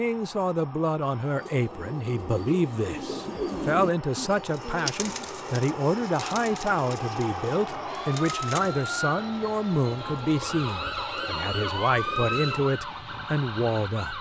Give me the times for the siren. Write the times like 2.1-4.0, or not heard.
0.0-14.1.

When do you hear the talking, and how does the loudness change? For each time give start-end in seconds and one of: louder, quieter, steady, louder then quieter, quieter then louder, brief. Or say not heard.
0.0-14.1 steady.